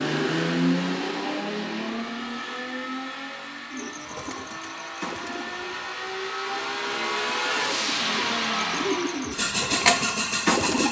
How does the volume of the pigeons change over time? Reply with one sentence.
The loudness of the pigeons goes down, then up.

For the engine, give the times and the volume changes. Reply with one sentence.
You can hear the engine from 0.0 to 10.8 s, getting quieter then louder.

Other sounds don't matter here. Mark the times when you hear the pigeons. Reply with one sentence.
You can hear the pigeons from 3.7 to 10.8 s.